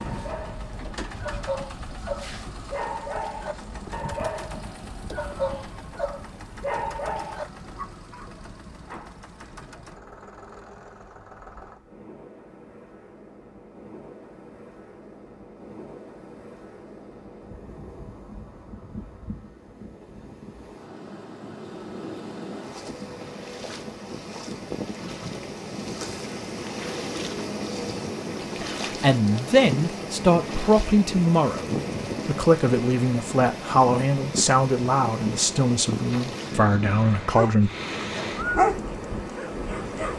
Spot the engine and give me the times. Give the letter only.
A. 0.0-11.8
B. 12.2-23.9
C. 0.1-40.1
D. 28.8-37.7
A.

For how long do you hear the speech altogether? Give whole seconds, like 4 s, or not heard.
9 s.